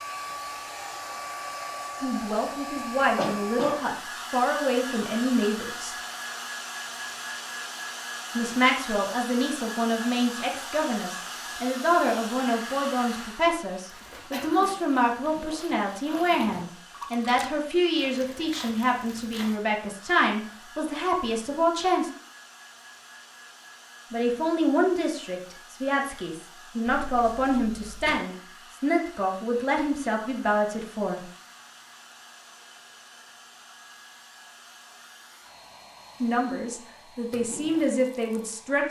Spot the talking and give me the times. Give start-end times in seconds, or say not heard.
2.0-6.0, 8.3-22.1, 24.1-31.2, 36.2-38.8.